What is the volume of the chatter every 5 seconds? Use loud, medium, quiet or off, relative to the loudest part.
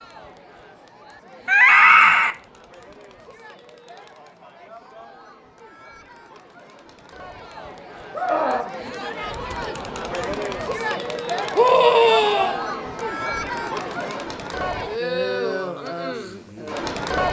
quiet, medium, loud, loud.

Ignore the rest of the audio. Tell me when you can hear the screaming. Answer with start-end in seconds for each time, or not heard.
1.4-2.4, 8.1-8.7, 11.6-12.6.